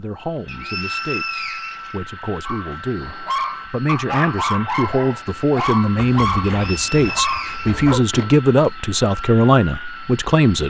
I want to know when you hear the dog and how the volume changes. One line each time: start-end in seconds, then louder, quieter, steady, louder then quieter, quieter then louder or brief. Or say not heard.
2.5-8.1 steady.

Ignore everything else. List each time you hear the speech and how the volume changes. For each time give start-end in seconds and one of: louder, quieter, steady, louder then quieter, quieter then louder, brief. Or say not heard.
0.0-10.6 louder.